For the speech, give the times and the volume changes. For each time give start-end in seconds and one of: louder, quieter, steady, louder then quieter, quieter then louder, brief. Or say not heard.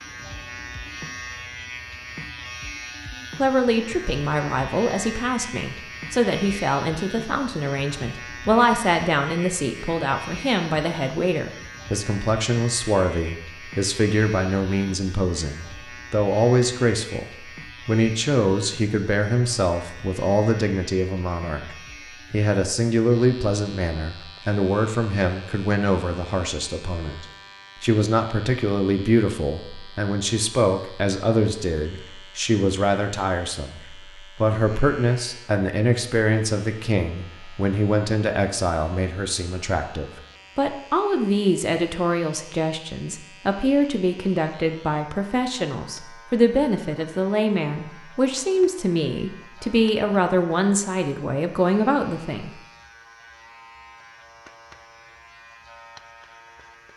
3.4-52.5 steady.